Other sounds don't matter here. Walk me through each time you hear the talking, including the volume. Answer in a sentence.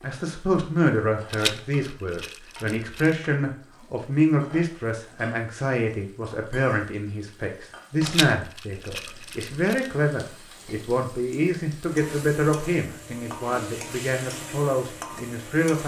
The talking can be heard from 0.0 to 15.8 s, at a steady volume.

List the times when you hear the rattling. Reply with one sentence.
The rattling can be heard from 1.3 to 3.1 s and from 8.0 to 9.9 s.